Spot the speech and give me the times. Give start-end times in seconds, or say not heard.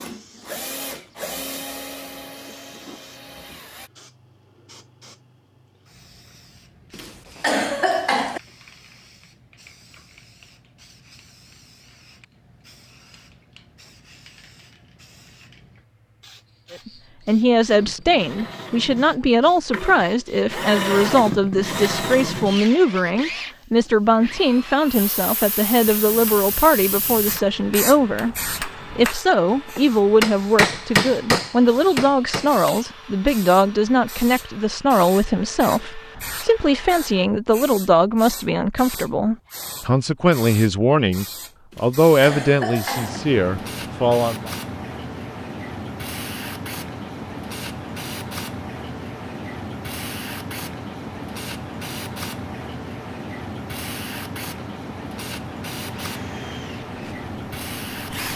16.7-44.5.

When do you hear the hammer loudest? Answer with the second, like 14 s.
31 s.